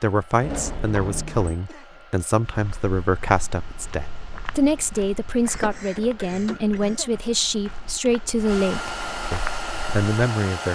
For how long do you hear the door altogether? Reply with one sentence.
The door can be heard for 2 seconds in total.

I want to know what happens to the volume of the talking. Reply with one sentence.
The volume of the talking stays about the same.